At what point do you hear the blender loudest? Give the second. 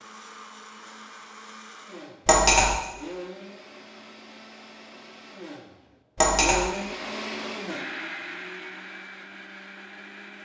7 s.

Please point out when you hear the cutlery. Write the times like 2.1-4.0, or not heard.
2.2-2.8, 6.2-6.7.